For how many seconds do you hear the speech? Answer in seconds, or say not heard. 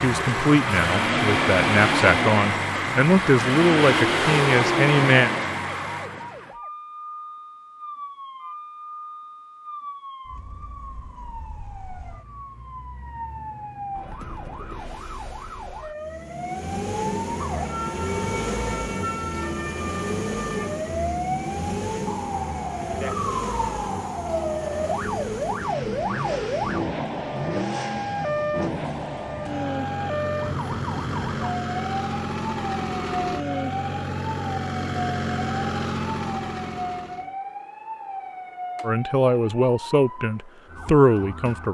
8 s.